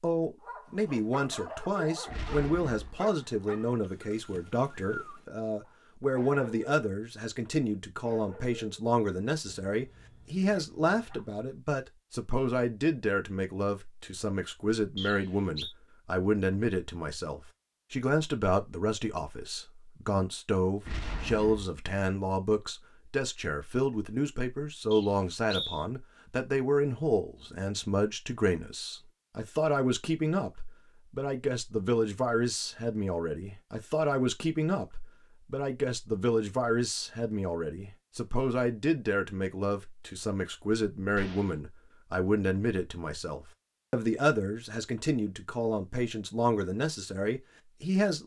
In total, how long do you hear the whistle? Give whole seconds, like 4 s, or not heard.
2 s.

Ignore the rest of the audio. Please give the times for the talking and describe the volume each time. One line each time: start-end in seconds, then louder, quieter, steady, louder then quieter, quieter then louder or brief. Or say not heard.
0.0-48.2 steady.